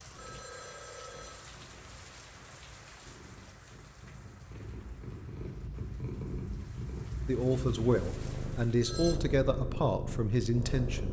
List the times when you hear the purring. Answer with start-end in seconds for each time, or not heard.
0.0-11.0.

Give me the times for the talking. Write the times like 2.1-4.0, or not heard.
7.2-11.0.